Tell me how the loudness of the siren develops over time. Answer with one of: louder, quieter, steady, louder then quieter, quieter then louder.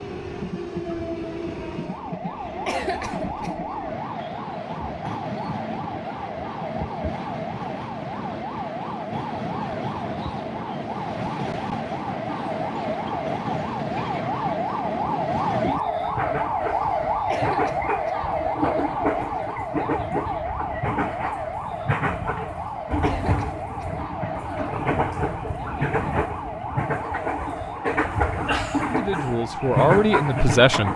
louder then quieter.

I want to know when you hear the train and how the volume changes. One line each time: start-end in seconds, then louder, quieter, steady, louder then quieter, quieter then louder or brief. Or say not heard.
0.0-30.9 louder.